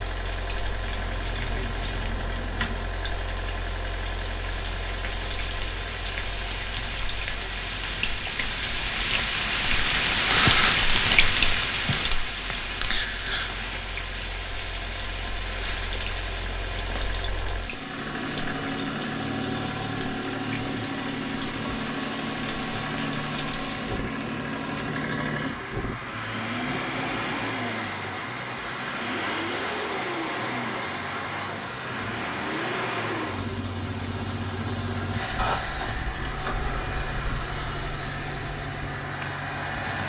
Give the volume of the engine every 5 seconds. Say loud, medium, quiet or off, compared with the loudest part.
medium, medium, quiet, loud, loud, loud, loud, loud.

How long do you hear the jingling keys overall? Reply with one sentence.
The jingling keys can be heard for 4 seconds in total.